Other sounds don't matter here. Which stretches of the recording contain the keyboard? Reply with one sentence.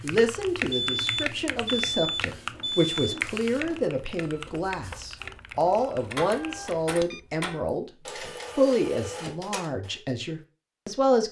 The keyboard can be heard from 0.0 to 6.8 s.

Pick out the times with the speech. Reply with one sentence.
You can hear the speech from 0.0 to 7.8 s and from 8.6 to 11.2 s.